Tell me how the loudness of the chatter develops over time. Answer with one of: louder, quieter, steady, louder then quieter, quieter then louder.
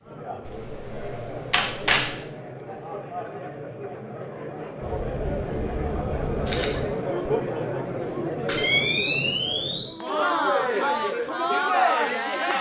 louder.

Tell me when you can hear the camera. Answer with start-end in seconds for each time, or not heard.
0.5-2.1, 4.8-6.8, 8.4-10.3.